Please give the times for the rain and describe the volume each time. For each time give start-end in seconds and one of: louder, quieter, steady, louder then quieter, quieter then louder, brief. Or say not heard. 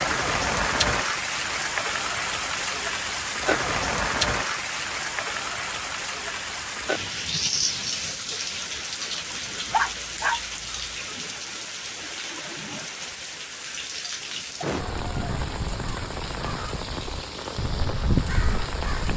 0.0-19.1 quieter.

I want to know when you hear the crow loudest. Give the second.
18 s.